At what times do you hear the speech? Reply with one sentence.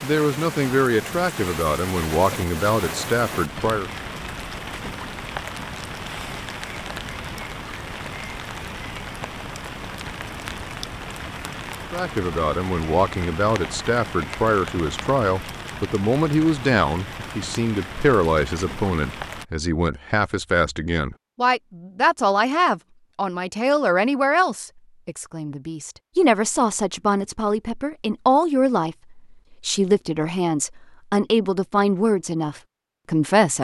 The speech can be heard from 0.0 to 3.9 s and from 11.9 to 33.5 s.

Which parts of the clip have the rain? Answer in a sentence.
The rain can be heard from 0.0 to 19.4 s.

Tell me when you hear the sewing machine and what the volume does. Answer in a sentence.
The sewing machine can't be heard in this clip.